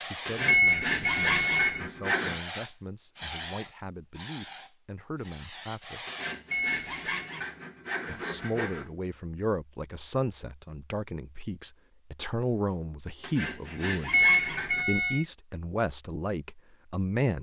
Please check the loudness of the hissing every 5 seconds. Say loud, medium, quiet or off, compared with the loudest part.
loud, loud, off, off.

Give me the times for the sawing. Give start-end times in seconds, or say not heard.
0.2-2.4, 6.0-8.9, 13.2-14.8.